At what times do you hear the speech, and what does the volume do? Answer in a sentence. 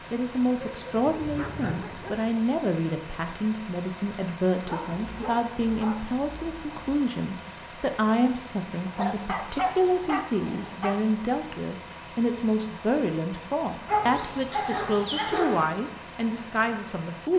You can hear the speech from 0.1 to 17.3 s, at a steady volume.